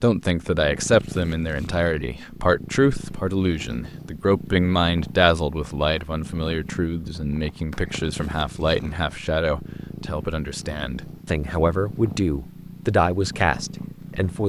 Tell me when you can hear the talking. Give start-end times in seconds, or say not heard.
0.0-14.4.